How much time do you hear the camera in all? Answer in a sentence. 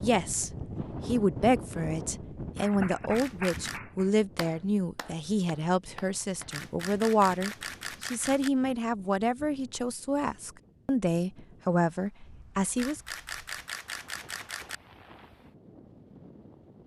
You can hear the camera for 5 seconds altogether.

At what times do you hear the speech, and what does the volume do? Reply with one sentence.
You can hear the speech from 0.0 to 13.0 s, at a steady volume.